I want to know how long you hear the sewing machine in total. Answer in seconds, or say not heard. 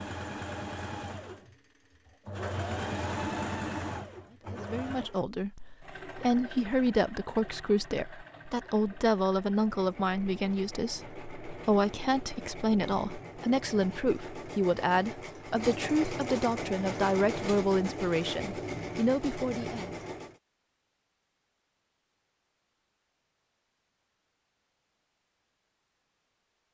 20 s.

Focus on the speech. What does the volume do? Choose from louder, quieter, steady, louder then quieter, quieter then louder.
steady.